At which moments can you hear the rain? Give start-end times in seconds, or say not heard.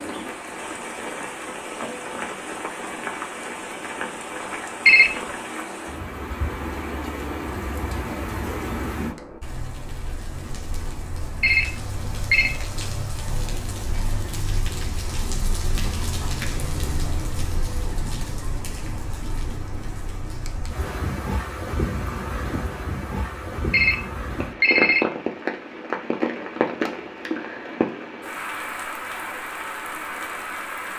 0.0-30.9.